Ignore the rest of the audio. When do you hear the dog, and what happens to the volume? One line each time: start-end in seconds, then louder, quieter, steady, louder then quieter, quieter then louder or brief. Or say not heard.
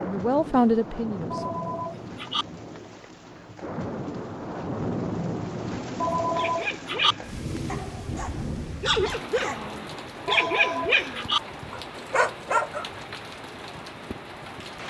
6.3-12.9 louder.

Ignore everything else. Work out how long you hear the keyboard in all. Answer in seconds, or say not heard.
not heard.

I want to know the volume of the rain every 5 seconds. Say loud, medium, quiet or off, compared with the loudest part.
loud, loud, medium.